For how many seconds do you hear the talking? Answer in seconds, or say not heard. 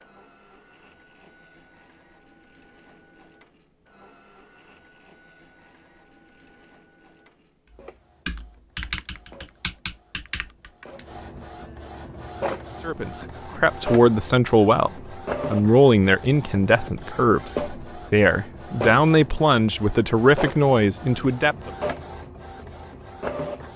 9 s.